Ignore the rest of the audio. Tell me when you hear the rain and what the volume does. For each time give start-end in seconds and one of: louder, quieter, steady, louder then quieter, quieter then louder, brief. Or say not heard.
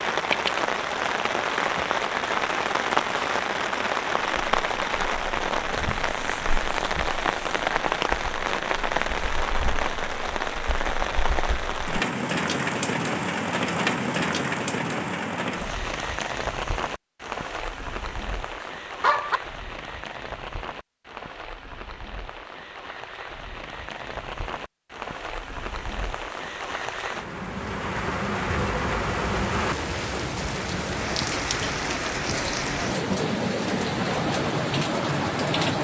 0.0-35.7 quieter then louder.